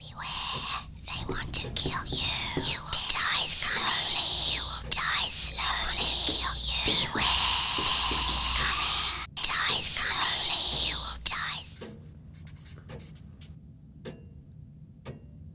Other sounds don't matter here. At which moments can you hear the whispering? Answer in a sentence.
The whispering can be heard from 0.0 to 11.8 s.